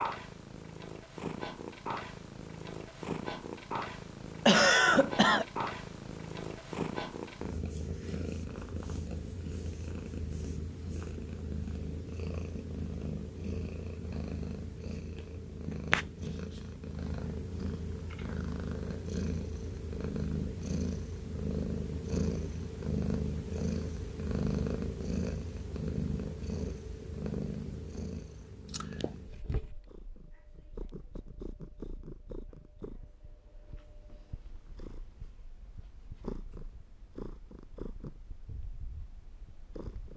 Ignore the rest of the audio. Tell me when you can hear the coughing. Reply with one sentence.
The coughing can be heard from 4.5 to 5.5 s.